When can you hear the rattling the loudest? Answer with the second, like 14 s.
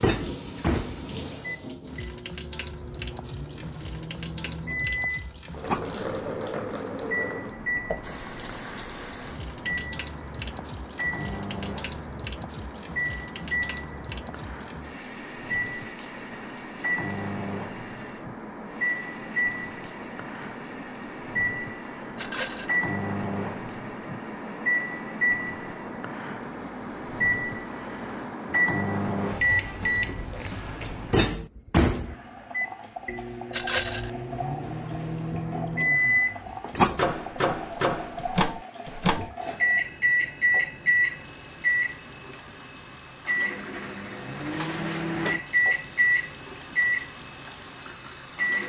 34 s.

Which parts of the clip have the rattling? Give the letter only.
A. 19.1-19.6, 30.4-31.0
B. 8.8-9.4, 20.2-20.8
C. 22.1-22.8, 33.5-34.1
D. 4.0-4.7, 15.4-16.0
C.